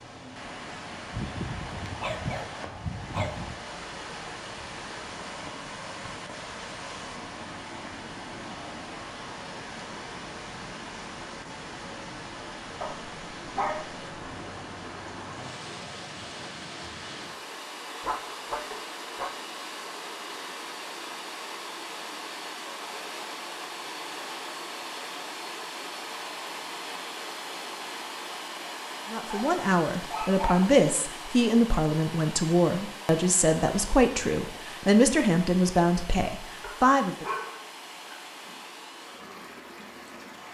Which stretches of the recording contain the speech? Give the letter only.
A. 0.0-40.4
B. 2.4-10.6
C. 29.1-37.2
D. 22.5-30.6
C.